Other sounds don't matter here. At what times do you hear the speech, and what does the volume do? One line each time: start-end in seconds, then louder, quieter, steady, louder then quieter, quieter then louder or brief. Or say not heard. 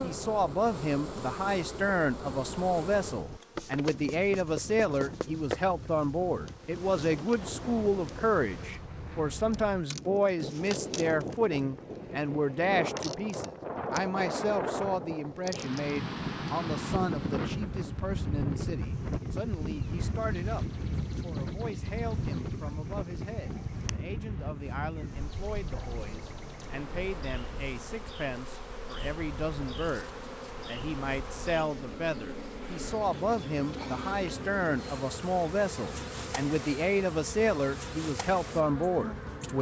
0.0-39.5 quieter then louder.